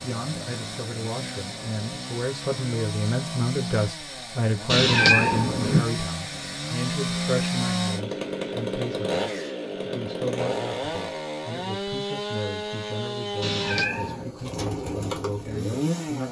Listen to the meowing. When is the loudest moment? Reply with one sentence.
The volume of the meowing peaks at 5 seconds.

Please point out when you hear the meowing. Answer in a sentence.
You can hear the meowing from 4.7 to 5.8 s and from 13.4 to 14.3 s.